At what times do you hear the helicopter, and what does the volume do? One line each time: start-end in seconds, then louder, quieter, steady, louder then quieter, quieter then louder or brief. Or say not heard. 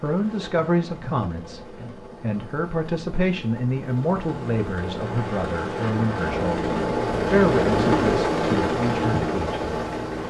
0.0-10.2 louder.